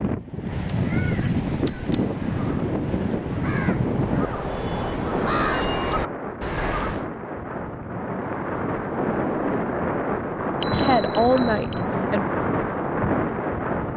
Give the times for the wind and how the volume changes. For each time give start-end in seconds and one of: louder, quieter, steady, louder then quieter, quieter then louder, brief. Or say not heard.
0.0-13.9 quieter then louder.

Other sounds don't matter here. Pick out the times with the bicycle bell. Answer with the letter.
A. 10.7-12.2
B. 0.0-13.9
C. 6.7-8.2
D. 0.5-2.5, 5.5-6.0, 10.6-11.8
D.